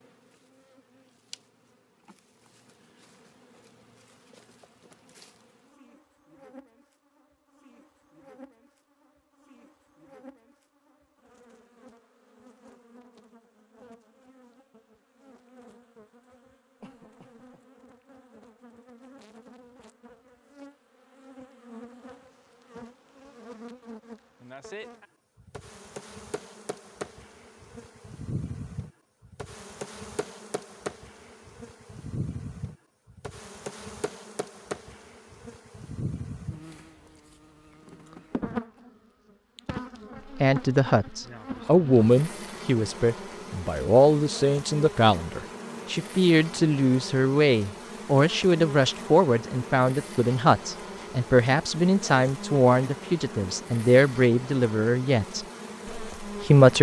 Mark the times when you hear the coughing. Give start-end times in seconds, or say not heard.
16.8-17.6.